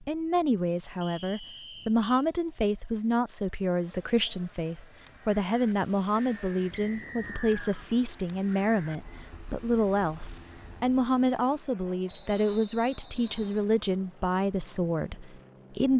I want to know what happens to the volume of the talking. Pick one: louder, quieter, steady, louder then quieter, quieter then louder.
steady.